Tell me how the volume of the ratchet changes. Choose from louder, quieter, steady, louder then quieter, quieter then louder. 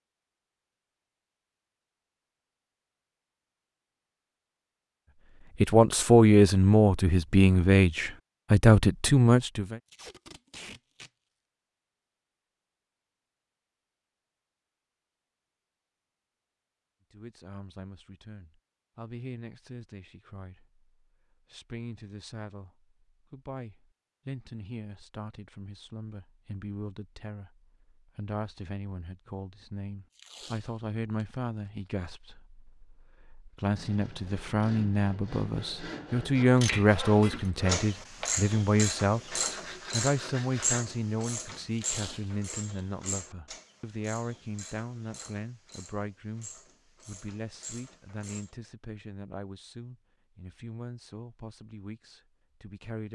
quieter.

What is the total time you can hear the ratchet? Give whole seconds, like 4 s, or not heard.
12 s.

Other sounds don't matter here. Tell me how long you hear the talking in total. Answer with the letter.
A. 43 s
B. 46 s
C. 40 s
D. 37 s
C.